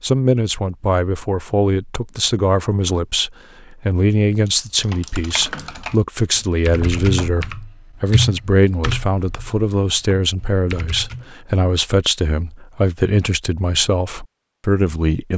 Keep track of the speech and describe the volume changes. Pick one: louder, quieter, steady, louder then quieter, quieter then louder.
steady.